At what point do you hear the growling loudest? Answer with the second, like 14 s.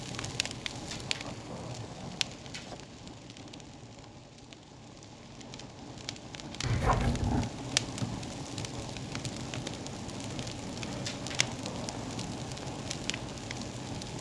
7 s.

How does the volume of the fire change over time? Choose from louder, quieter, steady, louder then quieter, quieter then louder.
quieter then louder.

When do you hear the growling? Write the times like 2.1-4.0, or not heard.
0.8-2.8, 6.6-7.5, 10.9-12.3.